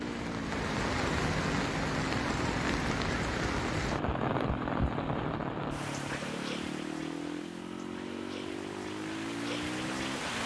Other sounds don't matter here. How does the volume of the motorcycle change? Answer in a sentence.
The loudness of the motorcycle stays about the same.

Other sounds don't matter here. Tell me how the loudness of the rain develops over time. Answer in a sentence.
The loudness of the rain goes down.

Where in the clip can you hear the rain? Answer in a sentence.
You can hear the rain from 0.0 to 10.4 s.